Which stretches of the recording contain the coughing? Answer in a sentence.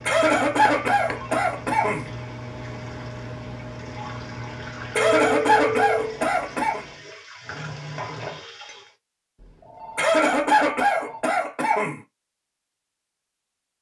You can hear the coughing from 0.1 to 2.1 s, from 5.0 to 6.8 s and from 9.9 to 12.0 s.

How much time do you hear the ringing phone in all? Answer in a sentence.
The ringing phone can be heard for 4 seconds in total.